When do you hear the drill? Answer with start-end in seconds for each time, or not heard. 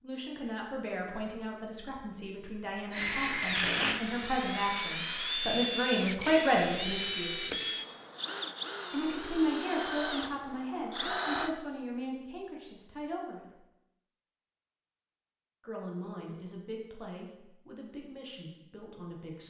2.9-11.6.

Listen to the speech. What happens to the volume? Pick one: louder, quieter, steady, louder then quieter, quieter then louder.
louder then quieter.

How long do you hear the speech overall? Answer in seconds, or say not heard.
16 s.